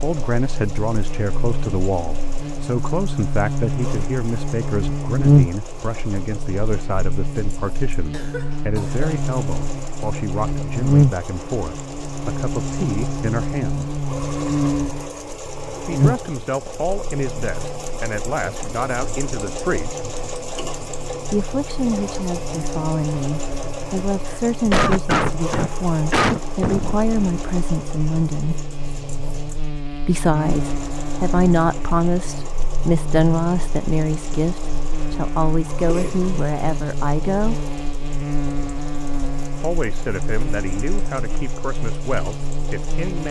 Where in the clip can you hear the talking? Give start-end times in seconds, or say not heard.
0.0-14.0, 15.8-20.0, 21.3-28.6, 30.0-37.7, 39.6-43.2.